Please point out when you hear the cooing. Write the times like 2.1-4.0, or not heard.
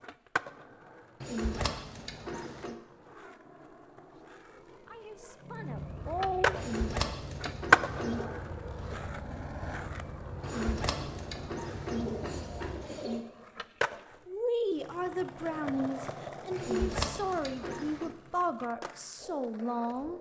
1.2-2.8, 6.5-8.2, 10.4-13.2, 16.6-18.1.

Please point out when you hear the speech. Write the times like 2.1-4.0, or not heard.
4.8-6.6, 14.2-20.1.